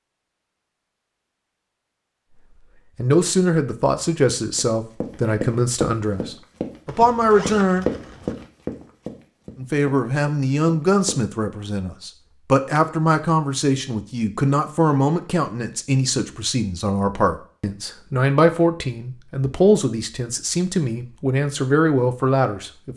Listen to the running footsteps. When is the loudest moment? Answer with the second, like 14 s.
8 s.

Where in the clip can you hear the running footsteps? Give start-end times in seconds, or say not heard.
4.5-11.2.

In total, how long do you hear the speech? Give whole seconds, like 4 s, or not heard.
18 s.